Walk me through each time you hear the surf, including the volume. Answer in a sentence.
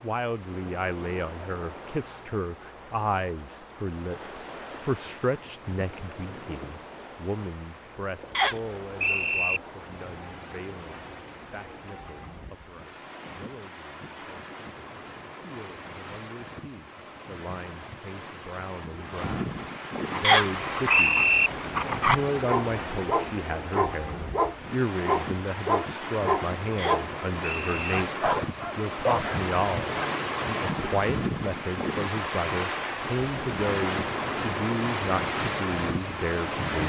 The surf can be heard from 0.0 to 36.8 s, getting louder.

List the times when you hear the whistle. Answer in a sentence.
You can hear the whistle from 8.3 to 9.6 s, from 20.2 to 21.5 s and from 26.8 to 27.9 s.